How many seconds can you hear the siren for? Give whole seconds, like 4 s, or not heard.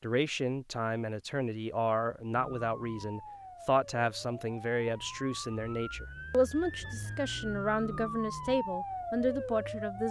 8 s.